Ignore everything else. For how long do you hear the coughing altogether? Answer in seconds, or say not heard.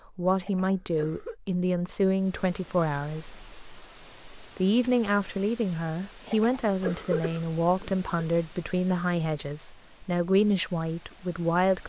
3 s.